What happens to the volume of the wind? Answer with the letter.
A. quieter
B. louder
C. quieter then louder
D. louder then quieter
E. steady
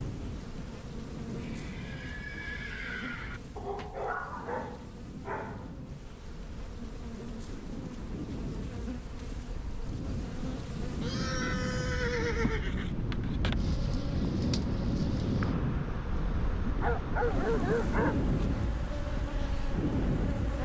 B.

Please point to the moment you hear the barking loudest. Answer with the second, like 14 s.
18 s.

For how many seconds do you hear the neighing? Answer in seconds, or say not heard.
4 s.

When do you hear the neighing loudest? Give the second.
12 s.